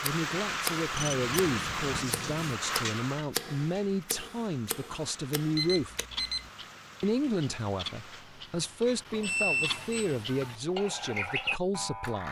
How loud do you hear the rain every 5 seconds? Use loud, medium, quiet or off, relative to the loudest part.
loud, quiet, off.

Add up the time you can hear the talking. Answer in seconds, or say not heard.
11 s.